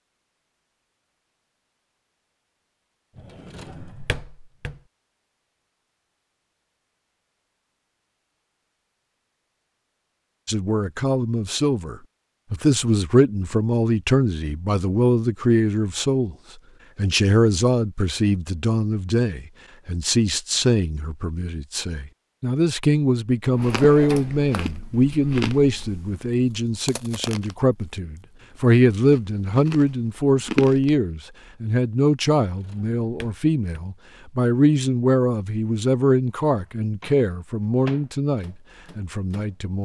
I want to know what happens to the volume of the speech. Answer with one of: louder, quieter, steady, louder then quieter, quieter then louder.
steady.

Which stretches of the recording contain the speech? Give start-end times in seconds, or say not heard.
10.4-16.4, 16.9-39.8.